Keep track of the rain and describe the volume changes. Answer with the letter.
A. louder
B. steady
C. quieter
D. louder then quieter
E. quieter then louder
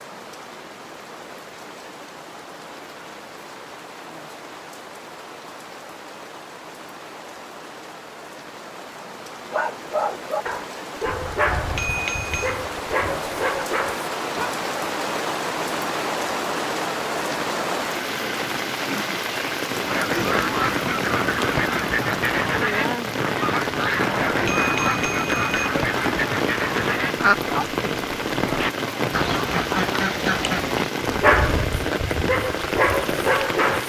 A.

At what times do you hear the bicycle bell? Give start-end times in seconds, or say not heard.
11.5-12.6, 24.3-25.7.